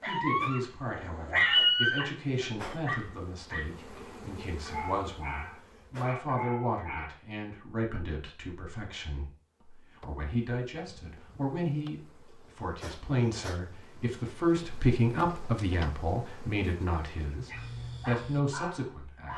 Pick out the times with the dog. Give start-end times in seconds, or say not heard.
0.0-7.2, 17.4-19.3.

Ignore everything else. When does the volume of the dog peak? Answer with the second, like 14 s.
2 s.